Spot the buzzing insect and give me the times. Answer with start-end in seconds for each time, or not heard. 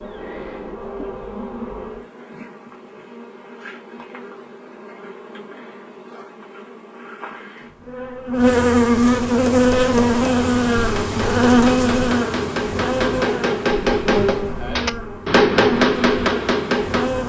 0.0-17.2.